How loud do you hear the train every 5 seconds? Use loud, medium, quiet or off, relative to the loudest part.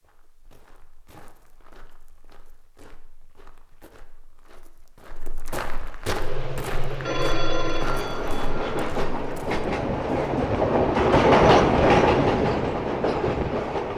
off, medium, loud.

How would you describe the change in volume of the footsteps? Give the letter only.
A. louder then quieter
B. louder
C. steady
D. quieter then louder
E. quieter
B.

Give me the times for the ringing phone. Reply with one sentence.
You can hear the ringing phone from 7.0 to 9.0 s.